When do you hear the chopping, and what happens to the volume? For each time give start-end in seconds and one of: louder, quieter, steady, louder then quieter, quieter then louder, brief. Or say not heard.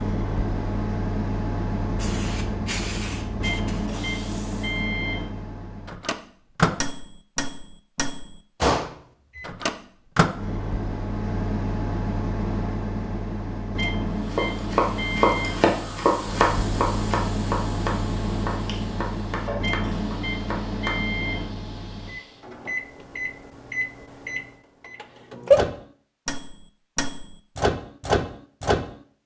14.2-20.9 quieter.